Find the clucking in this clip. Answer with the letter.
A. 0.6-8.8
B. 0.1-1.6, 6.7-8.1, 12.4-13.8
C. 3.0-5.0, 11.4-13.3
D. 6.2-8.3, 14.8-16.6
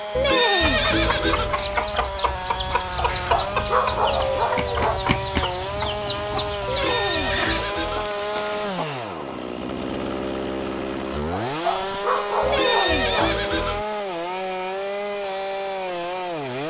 A.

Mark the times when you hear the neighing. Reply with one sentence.
The neighing can be heard from 0.1 to 1.6 s, from 6.7 to 8.1 s and from 12.4 to 13.8 s.